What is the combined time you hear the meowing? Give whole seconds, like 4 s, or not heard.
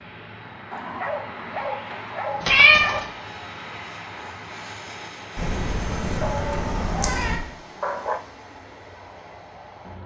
3 s.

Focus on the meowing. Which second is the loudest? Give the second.
3 s.